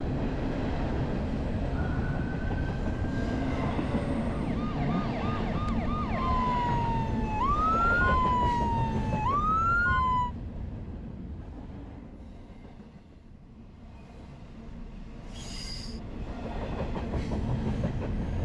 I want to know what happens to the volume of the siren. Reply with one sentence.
The loudness of the siren goes up.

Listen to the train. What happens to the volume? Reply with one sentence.
The volume of the train goes down, then up.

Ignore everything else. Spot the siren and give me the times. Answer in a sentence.
You can hear the siren from 1.7 to 10.3 s.